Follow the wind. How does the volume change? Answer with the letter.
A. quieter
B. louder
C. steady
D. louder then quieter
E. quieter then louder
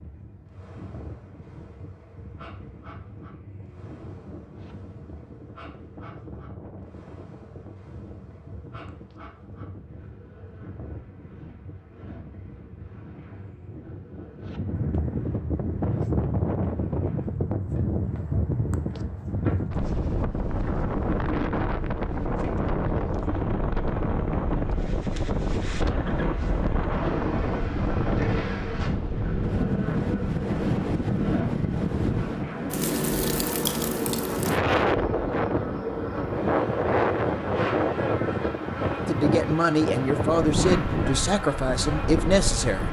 B.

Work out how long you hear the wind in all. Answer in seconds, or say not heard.
43 s.